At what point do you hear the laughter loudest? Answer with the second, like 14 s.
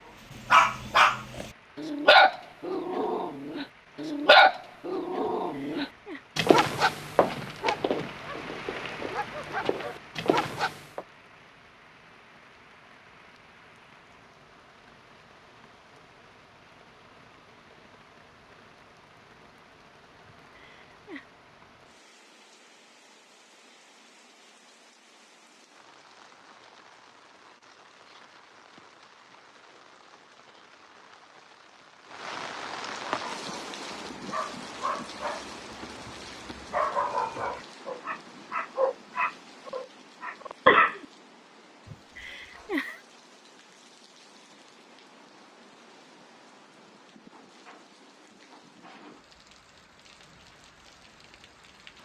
43 s.